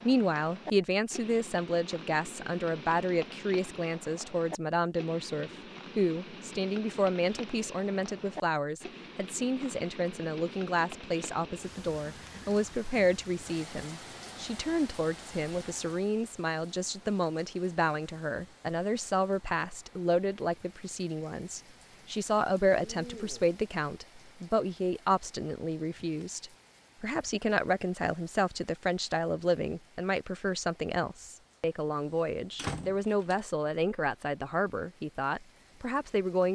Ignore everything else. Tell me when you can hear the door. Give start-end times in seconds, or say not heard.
31.9-33.4.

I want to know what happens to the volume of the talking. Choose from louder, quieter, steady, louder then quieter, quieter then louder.
steady.